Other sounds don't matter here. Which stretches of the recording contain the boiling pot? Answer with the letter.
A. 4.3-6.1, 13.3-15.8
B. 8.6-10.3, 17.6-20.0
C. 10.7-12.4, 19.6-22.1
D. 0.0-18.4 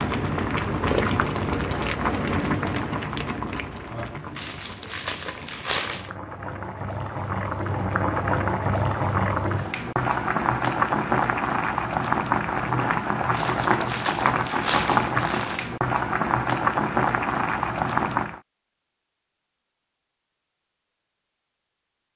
D.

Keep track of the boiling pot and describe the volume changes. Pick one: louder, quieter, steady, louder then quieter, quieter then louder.
quieter then louder.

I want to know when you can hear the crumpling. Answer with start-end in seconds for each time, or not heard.
4.3-6.1, 13.3-15.8.